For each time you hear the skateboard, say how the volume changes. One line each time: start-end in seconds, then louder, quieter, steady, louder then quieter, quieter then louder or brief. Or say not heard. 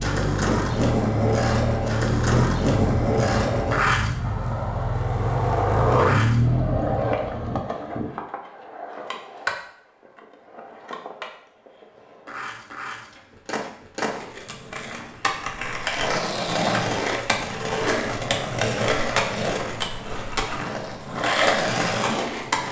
0.0-22.6 quieter then louder.